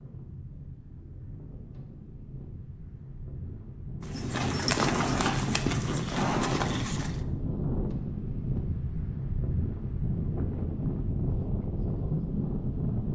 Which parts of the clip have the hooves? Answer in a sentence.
The hooves can be heard from 4.0 to 7.2 s.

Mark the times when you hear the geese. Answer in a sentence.
You can't hear the geese here.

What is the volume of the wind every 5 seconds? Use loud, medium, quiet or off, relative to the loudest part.
quiet, loud, loud.